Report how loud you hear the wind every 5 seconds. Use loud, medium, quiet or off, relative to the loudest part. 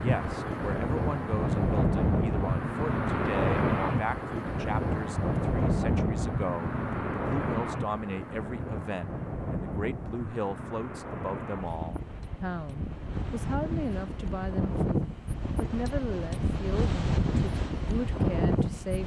loud, loud, medium, loud.